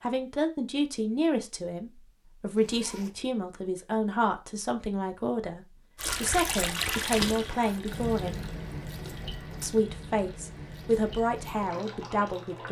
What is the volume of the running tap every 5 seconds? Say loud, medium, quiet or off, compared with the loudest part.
off, loud, medium.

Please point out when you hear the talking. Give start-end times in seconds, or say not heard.
0.0-8.4, 9.6-12.6.